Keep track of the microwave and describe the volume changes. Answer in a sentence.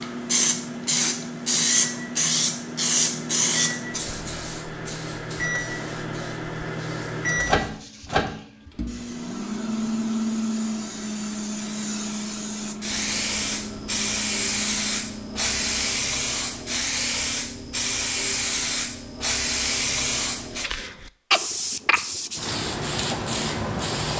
The loudness of the microwave goes up, then down.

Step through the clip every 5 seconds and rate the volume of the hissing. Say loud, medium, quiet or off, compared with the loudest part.
loud, quiet, medium, loud, loud.